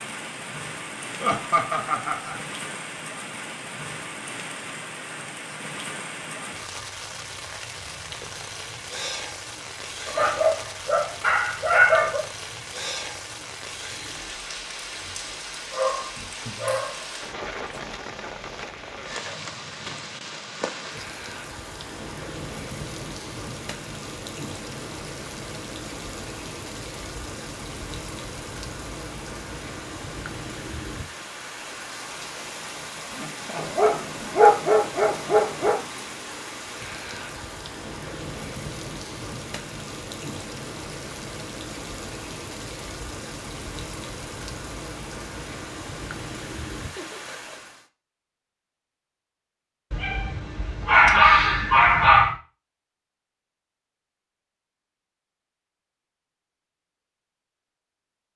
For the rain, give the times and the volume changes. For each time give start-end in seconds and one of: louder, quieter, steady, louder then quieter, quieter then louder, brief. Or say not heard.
0.0-47.9 steady.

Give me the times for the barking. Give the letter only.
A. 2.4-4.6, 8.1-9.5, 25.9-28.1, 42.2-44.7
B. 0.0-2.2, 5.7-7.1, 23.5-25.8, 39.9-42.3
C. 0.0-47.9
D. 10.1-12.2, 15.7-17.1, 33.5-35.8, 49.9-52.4
D.